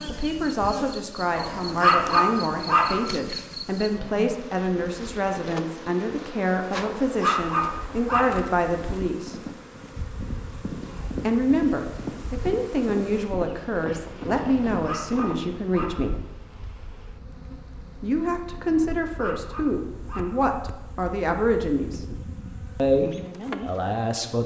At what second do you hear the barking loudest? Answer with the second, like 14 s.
2 s.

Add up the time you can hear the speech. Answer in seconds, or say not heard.
20 s.